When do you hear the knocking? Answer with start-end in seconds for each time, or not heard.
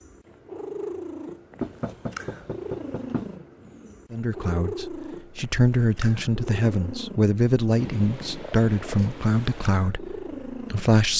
1.6-3.4.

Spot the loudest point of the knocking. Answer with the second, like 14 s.
2 s.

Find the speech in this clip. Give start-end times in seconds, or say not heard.
4.1-11.1.